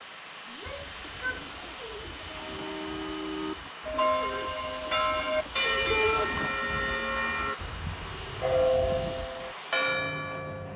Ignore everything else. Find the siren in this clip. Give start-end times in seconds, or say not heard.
not heard.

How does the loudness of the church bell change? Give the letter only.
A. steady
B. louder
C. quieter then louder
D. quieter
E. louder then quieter
A.